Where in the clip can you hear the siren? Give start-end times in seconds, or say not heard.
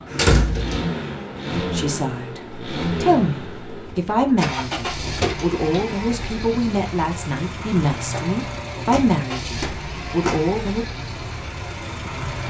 not heard.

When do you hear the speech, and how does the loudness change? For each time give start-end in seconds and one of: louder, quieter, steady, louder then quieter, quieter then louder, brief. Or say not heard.
1.5-10.8 steady.